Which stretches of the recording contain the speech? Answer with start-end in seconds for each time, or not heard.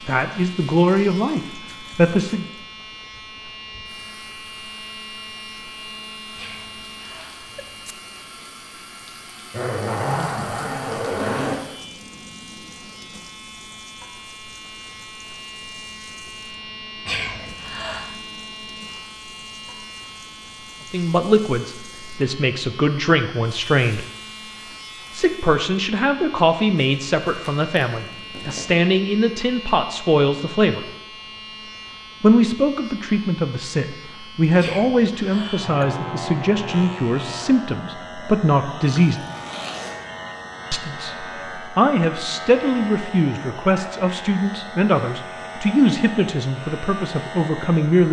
0.1-2.5, 20.9-24.1, 25.1-30.8, 32.2-39.2, 40.7-48.0.